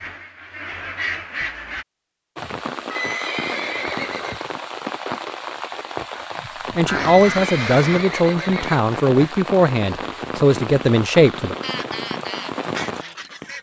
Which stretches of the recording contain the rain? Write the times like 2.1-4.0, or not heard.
2.4-13.4.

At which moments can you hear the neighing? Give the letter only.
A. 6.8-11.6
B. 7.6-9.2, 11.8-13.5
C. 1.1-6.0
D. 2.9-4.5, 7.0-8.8
D.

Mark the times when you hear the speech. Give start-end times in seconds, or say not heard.
6.8-11.6.